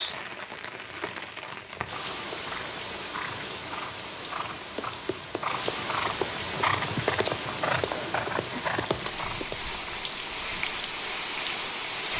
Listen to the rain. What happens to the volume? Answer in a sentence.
The loudness of the rain goes up.